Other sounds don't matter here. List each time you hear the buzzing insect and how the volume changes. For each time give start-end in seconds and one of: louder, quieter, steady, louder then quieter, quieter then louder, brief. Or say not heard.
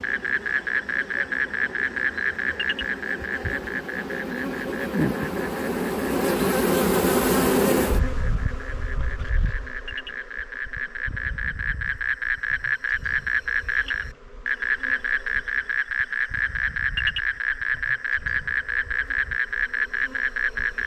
0.0-20.8 louder then quieter.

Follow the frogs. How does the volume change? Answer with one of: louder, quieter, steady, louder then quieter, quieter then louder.
quieter then louder.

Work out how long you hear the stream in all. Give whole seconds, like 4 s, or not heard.
not heard.